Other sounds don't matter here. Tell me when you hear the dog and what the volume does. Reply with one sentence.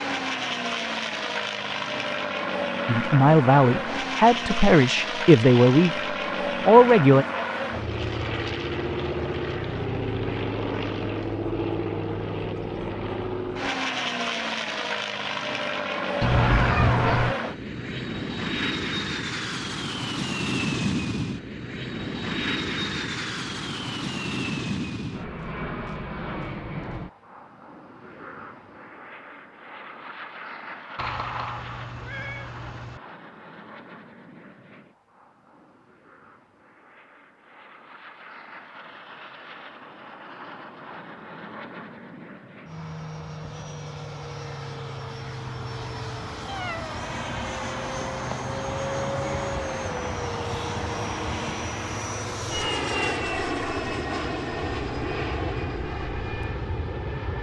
The dog can't be heard in this clip.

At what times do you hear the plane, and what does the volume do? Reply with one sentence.
The plane can be heard from 0.0 to 57.3 s, getting quieter then louder.